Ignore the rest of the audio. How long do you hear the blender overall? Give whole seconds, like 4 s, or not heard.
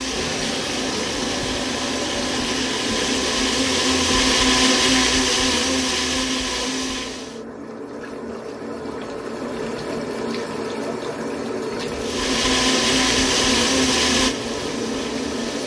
11 s.